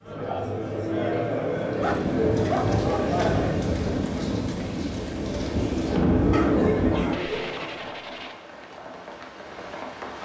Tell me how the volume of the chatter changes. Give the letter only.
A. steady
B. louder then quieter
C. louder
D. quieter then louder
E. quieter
D.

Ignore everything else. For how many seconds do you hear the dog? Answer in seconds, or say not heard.
4 s.